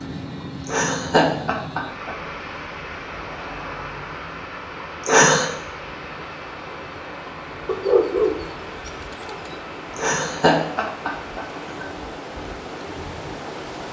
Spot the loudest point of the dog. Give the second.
8 s.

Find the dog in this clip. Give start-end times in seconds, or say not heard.
7.7-9.6.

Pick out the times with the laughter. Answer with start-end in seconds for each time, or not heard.
0.7-2.1, 5.0-5.5, 9.9-11.8.